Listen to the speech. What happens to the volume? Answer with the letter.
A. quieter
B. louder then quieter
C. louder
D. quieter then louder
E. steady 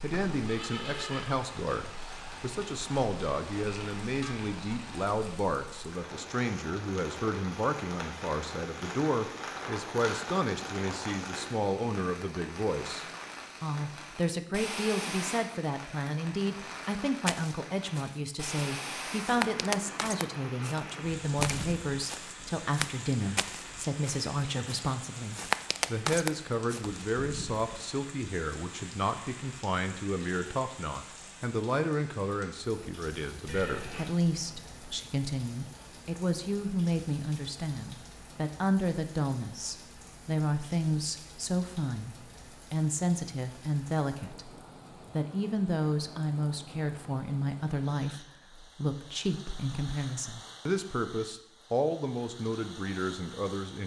E.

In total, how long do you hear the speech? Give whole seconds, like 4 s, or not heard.
53 s.